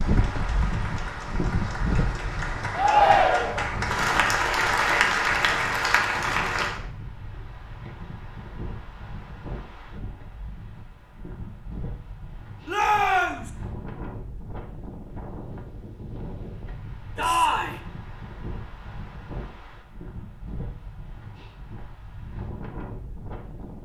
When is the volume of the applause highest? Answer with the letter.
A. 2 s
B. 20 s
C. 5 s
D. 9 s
C.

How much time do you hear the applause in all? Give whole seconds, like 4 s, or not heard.
7 s.